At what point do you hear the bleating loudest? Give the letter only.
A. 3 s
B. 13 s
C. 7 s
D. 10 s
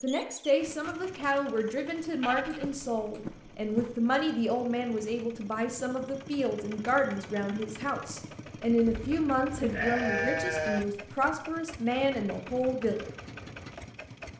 D.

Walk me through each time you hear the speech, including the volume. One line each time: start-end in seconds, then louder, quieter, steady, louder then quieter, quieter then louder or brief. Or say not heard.
0.0-13.1 steady.